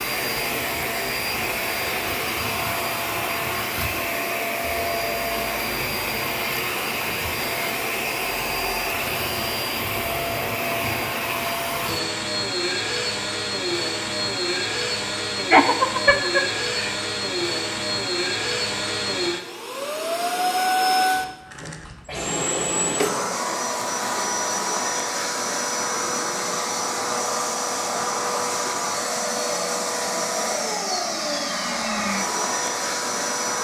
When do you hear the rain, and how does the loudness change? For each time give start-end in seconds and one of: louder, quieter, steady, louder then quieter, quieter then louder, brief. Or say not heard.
not heard.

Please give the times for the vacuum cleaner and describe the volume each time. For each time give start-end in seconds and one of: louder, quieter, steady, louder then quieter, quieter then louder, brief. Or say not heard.
0.0-33.5 steady.